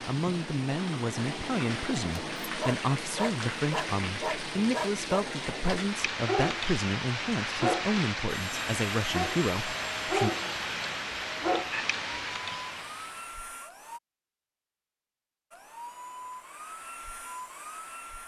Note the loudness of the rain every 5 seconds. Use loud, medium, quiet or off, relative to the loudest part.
loud, loud, loud, off.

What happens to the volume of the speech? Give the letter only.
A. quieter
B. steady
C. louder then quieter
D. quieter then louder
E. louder
B.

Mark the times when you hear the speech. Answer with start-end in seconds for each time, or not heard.
0.1-10.3.